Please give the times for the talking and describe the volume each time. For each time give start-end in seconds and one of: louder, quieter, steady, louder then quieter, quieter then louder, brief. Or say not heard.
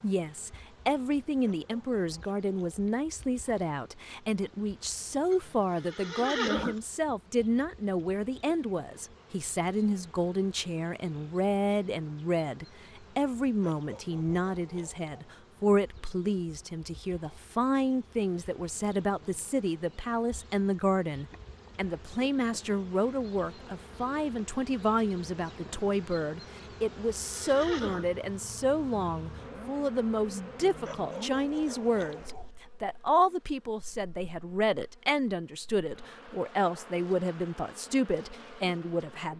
0.0-39.3 steady.